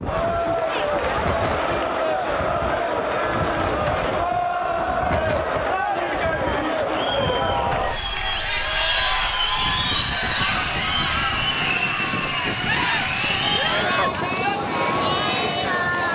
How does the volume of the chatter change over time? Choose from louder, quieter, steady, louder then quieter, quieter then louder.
steady.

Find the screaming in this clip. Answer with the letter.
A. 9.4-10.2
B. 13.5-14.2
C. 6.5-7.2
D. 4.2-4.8
B.